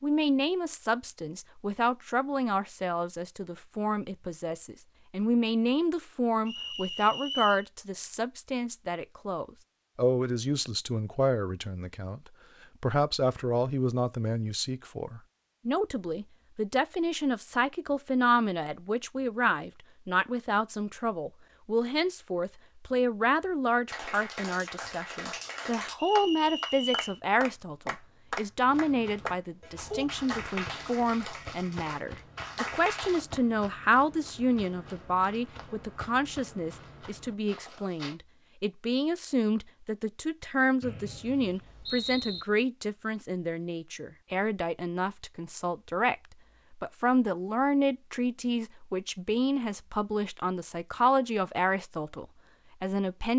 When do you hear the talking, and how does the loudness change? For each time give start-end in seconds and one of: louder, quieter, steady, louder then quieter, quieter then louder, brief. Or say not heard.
0.0-53.3 steady.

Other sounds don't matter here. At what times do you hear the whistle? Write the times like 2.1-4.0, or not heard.
6.5-7.7, 25.9-27.2, 40.8-42.5.